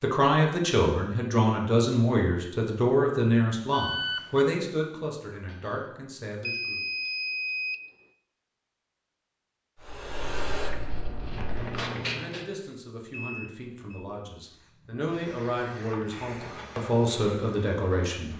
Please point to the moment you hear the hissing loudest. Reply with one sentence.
The volume of the hissing peaks at 12 seconds.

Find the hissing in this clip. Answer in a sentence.
The hissing can be heard from 9.8 to 12.4 s and from 14.4 to 18.3 s.